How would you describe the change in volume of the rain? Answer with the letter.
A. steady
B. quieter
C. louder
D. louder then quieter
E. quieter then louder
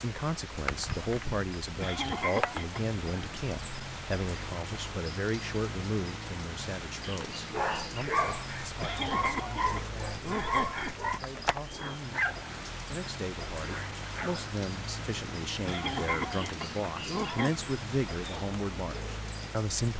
A.